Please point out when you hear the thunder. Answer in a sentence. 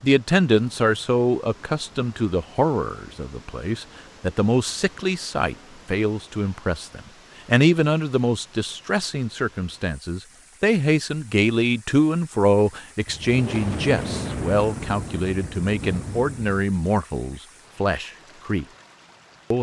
You can hear the thunder from 13.1 to 16.6 s.